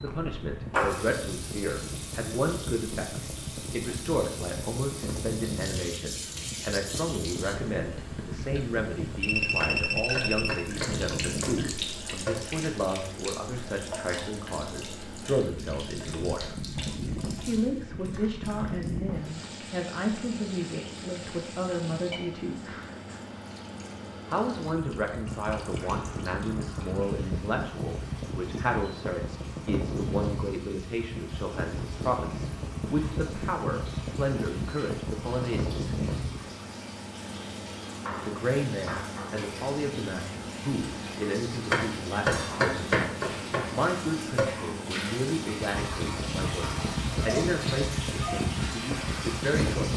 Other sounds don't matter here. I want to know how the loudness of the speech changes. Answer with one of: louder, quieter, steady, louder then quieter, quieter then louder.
steady.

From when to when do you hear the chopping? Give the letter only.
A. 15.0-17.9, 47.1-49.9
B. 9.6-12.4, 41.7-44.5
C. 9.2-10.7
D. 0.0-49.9
B.